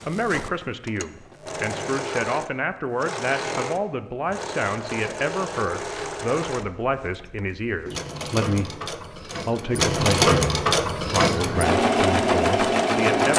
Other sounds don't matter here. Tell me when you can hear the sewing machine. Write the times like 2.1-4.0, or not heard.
0.0-13.3.